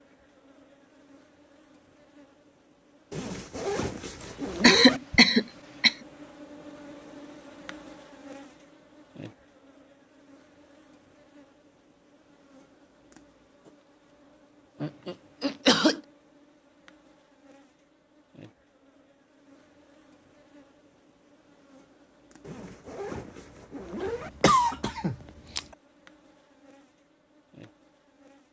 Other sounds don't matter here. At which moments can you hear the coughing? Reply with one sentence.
The coughing can be heard from 4.2 to 6.0 s, from 14.8 to 16.0 s and from 24.0 to 25.6 s.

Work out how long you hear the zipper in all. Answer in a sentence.
You can hear the zipper for 4 seconds altogether.